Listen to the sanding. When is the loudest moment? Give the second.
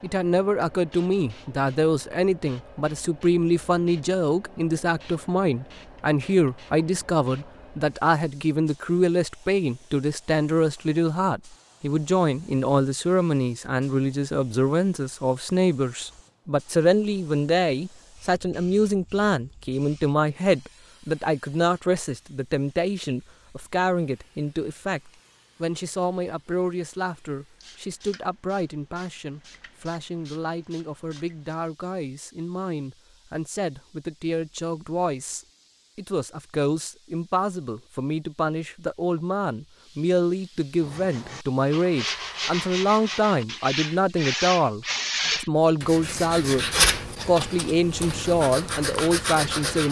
47 s.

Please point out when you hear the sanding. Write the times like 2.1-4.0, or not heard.
40.8-49.8.